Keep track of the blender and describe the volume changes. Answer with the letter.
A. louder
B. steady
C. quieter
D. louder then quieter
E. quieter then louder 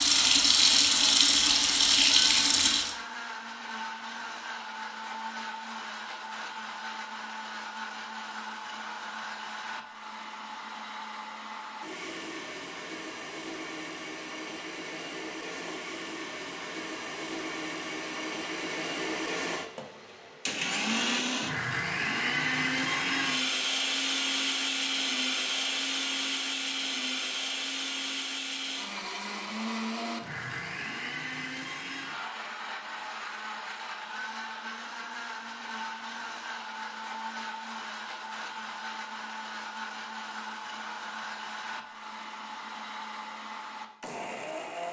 D.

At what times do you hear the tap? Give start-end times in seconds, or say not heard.
0.0-3.0.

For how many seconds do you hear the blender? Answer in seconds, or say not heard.
45 s.